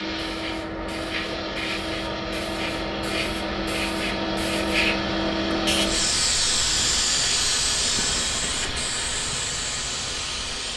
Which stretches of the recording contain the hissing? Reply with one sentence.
You can hear the hissing from 0.0 to 10.7 s.